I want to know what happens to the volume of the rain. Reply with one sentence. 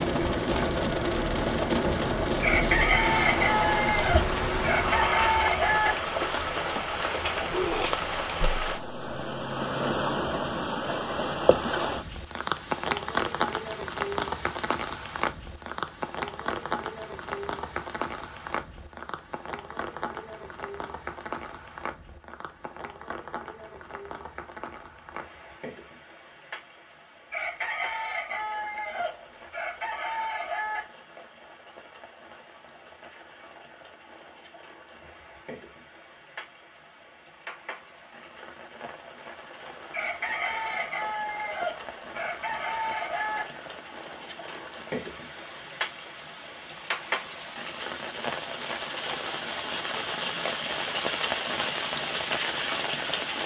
The volume of the rain goes down, then up.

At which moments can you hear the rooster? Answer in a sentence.
You can hear the rooster from 2.4 to 6.0 s, from 27.3 to 30.8 s and from 39.9 to 43.5 s.